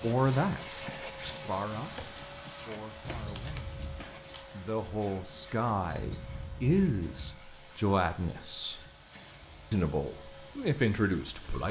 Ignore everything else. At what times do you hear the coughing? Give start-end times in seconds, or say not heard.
3.0-4.0, 5.9-7.5.